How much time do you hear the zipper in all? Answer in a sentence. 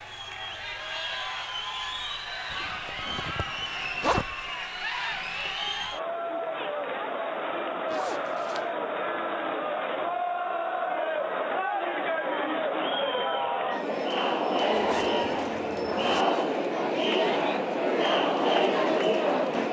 You can hear the zipper for 4 seconds altogether.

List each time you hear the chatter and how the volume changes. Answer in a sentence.
You can hear the chatter from 0.0 to 19.6 s, getting louder.